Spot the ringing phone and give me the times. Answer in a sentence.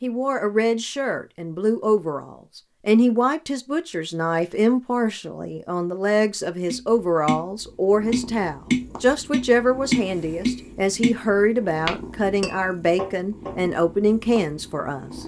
You can't hear the ringing phone here.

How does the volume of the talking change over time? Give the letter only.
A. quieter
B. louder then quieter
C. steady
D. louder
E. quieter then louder
C.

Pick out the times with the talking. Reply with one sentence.
The talking can be heard from 0.0 to 15.2 s.